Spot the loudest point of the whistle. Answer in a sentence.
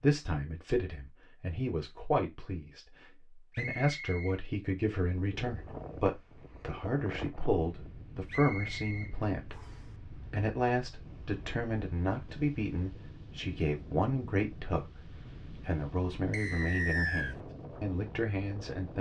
The loudest moment of the whistle is at 17 seconds.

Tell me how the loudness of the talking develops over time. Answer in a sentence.
The loudness of the talking stays about the same.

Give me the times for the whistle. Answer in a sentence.
You can hear the whistle from 3.5 to 4.3 s, from 8.2 to 9.8 s and from 16.3 to 17.4 s.